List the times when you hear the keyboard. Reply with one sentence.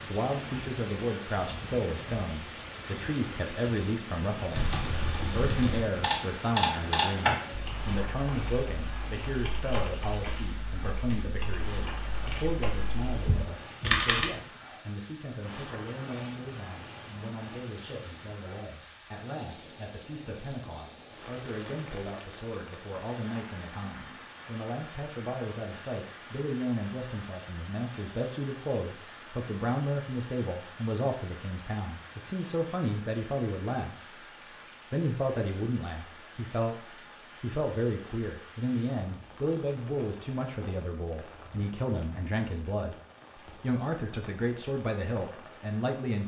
The keyboard can be heard from 4.5 to 14.3 s.